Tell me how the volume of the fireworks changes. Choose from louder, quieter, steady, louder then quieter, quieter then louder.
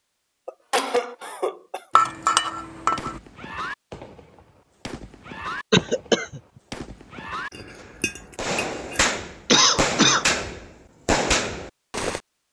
louder.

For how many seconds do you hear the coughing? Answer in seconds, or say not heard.
3 s.